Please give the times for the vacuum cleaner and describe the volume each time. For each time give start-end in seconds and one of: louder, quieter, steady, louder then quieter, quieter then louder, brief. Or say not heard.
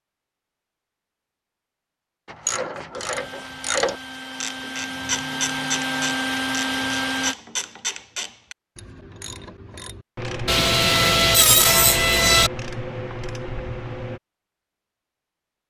3.1-7.3 louder.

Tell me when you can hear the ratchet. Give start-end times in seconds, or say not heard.
2.3-14.2.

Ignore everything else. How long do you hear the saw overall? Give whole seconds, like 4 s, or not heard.
2 s.